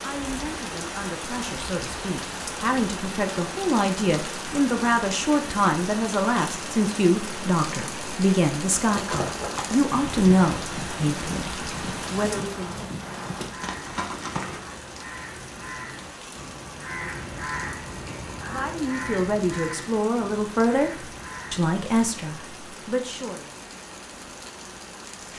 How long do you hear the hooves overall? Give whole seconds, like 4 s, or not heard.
6 s.